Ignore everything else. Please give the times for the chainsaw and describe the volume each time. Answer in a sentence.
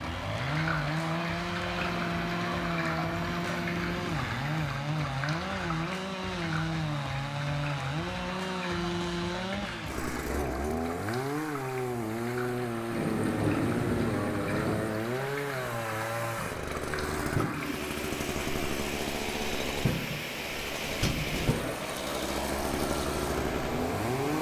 The chainsaw can be heard from 0.0 to 24.3 s, at a steady volume.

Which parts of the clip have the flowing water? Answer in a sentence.
You can hear the flowing water from 0.0 to 24.3 s.